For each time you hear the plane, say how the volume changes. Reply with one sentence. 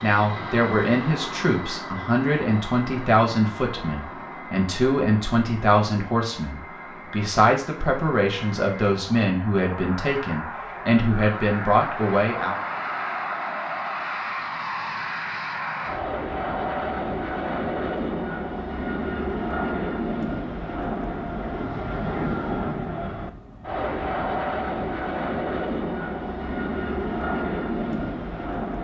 The plane can be heard from 0.0 to 28.7 s, getting louder.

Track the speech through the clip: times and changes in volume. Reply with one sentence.
You can hear the speech from 0.0 to 12.6 s, at a steady volume.